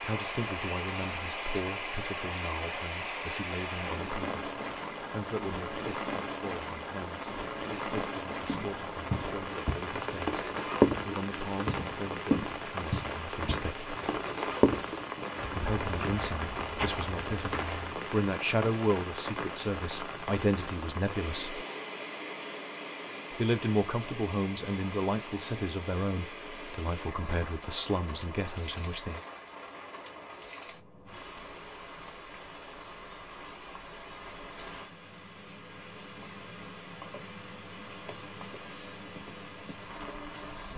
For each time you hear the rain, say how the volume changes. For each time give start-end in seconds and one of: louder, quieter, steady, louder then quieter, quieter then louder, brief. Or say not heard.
0.0-40.7 quieter.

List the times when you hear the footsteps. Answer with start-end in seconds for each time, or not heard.
8.4-18.0.